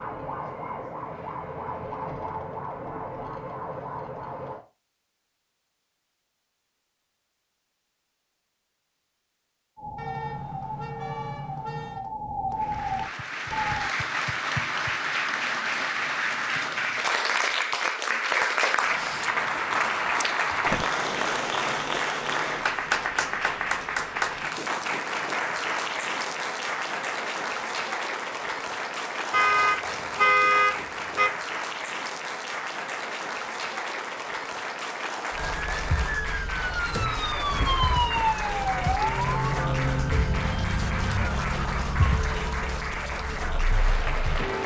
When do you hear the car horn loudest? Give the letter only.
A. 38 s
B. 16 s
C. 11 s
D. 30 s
D.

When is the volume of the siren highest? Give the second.
38 s.